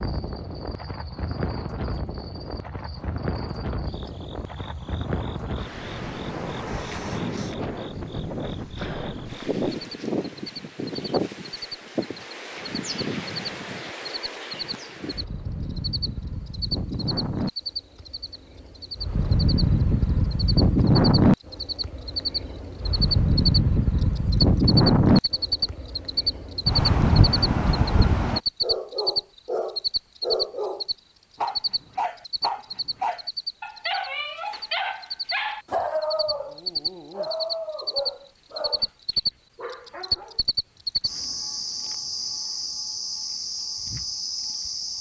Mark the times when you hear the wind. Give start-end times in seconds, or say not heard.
0.0-28.4.